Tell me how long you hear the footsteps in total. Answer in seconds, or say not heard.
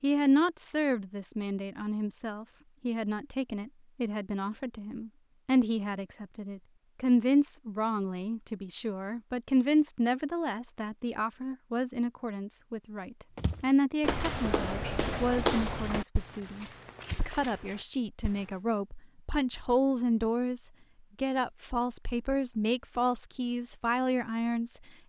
5 s.